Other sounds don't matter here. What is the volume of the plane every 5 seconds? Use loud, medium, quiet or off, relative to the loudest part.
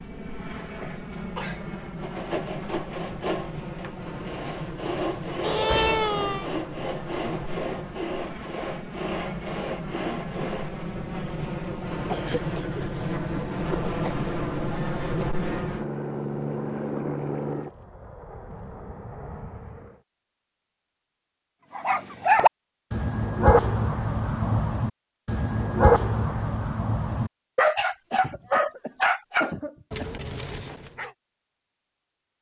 medium, medium, loud, loud, off, off, off.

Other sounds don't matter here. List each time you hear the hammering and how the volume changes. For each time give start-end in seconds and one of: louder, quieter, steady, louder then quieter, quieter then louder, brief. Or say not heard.
not heard.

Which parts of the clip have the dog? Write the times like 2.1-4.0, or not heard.
21.8-31.1.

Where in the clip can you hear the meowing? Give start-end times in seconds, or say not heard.
5.4-6.5.